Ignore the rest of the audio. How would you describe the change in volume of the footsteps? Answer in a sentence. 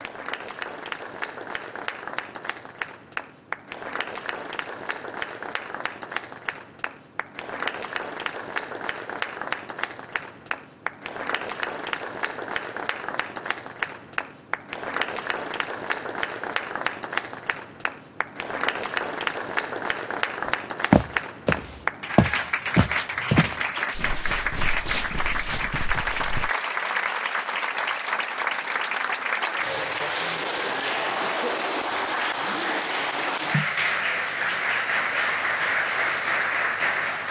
The loudness of the footsteps goes down.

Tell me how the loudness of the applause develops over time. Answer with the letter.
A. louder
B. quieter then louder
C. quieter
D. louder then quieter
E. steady
A.